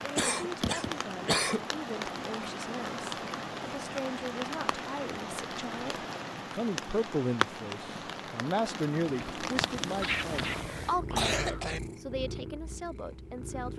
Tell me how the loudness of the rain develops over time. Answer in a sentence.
The volume of the rain stays about the same.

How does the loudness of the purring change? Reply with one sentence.
The volume of the purring goes down.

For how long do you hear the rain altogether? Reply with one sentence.
The rain can be heard for 11 seconds in total.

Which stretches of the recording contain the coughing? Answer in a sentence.
The coughing can be heard from 0.1 to 1.7 s and from 10.0 to 11.8 s.